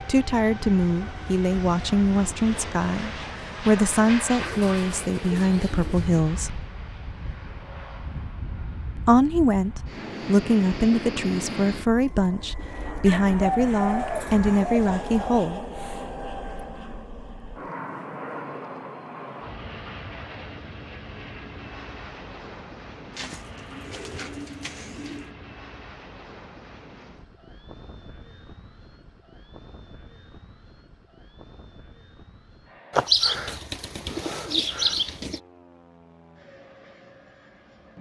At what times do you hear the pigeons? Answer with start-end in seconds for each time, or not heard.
4.4-6.2, 13.1-15.5, 23.1-25.3, 33.0-35.4.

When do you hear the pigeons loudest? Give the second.
33 s.